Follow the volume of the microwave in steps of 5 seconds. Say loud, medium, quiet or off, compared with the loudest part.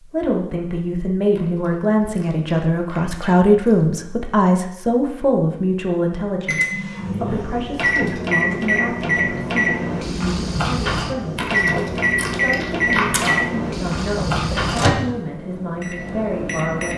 off, loud, loud, medium.